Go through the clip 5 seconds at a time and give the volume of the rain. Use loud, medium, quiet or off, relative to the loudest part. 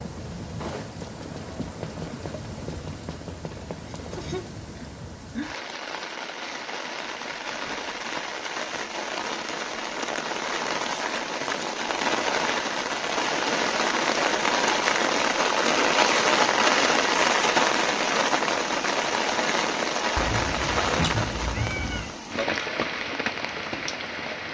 quiet, medium, loud, loud, medium.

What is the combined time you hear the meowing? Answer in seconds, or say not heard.
2 s.